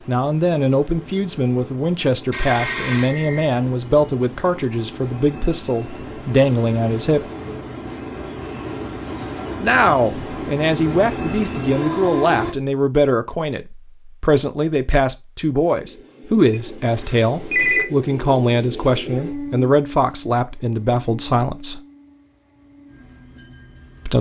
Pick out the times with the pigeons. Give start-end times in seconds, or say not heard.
not heard.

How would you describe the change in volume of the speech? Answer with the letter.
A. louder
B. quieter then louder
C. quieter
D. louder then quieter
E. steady
E.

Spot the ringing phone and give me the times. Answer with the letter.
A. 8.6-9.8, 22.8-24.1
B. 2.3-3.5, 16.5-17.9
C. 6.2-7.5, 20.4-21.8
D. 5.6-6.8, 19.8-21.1
B.